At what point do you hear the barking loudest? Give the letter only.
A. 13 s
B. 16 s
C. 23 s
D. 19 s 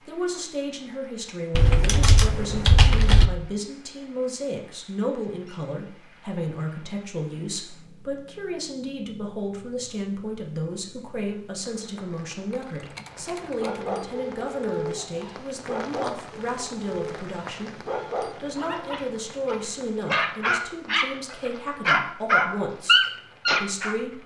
C.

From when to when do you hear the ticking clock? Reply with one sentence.
You can't hear the ticking clock here.